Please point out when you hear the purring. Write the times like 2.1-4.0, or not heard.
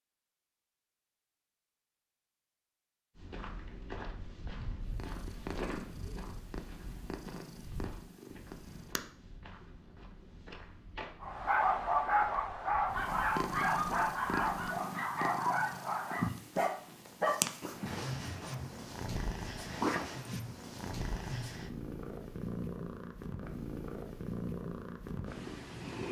4.9-9.0, 12.8-26.0.